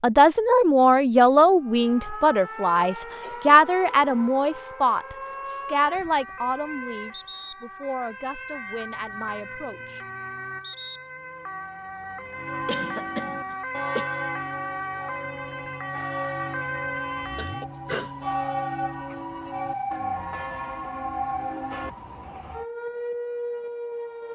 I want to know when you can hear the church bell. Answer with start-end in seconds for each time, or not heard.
12.3-21.9.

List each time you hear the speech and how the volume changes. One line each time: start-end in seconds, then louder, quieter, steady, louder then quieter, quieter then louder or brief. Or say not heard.
0.0-10.0 quieter.